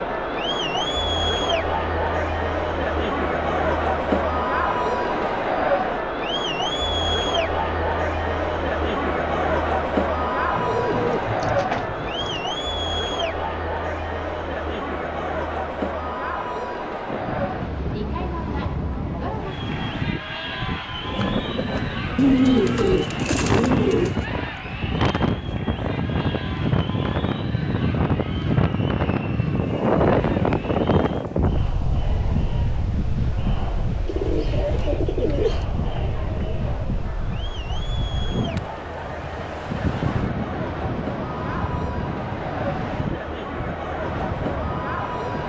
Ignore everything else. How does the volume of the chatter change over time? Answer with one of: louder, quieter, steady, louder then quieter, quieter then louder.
quieter then louder.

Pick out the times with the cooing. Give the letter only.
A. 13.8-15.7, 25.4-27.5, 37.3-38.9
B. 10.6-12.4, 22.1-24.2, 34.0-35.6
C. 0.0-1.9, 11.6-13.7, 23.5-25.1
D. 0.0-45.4
B.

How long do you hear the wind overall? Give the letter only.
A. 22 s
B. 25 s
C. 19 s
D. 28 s
D.